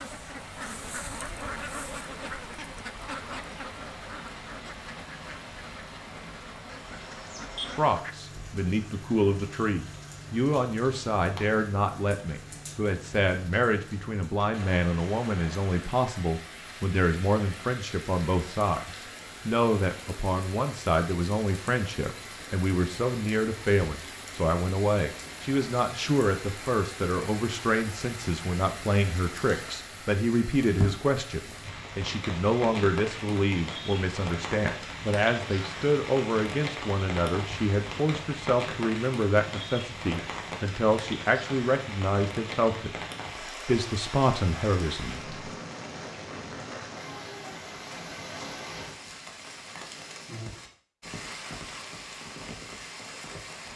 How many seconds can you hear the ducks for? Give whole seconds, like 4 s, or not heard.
8 s.